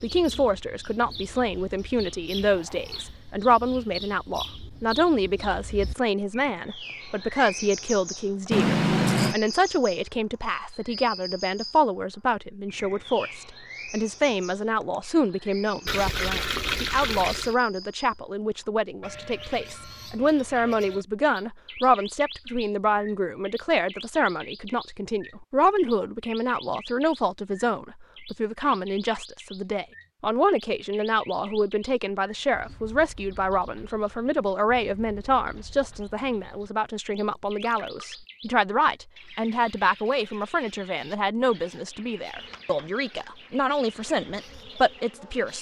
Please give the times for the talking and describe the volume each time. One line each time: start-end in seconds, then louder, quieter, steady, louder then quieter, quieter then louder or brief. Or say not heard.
0.0-45.5 steady.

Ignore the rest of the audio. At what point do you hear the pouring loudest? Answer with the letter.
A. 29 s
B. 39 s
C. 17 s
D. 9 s
D.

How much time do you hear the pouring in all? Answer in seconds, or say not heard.
3 s.